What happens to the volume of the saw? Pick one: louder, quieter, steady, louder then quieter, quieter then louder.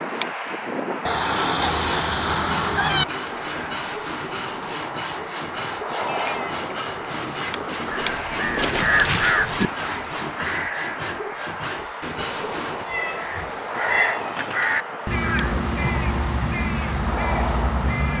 steady.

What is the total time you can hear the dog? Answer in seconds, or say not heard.
not heard.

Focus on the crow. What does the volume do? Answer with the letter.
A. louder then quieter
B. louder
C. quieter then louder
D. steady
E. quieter
D.